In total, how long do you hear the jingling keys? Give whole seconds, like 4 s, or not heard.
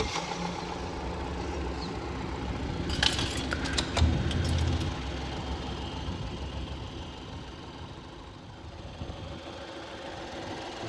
2 s.